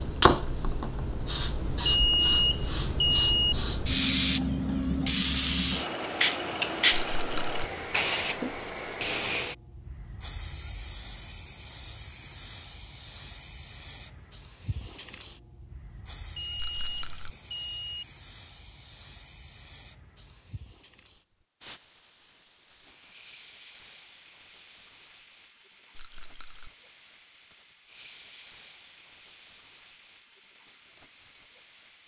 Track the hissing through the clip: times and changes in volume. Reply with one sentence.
You can hear the hissing from 0.0 to 32.0 s, getting quieter.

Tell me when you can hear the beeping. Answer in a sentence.
You can hear the beeping from 1.9 to 3.5 s and from 16.4 to 18.1 s.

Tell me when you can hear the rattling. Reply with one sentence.
You can hear the rattling from 6.9 to 7.7 s, from 16.6 to 17.3 s and from 25.9 to 26.7 s.